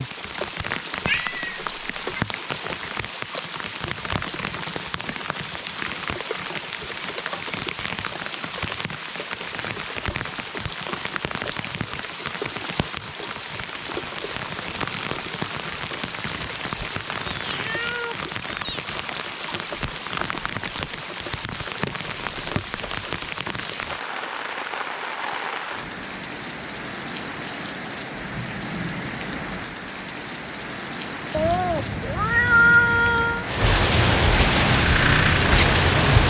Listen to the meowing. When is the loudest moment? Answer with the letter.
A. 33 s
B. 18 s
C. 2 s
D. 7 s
A.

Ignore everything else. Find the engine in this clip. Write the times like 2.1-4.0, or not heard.
34.5-36.2.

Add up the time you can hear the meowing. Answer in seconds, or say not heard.
5 s.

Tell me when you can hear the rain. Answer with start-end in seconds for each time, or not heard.
0.0-36.2.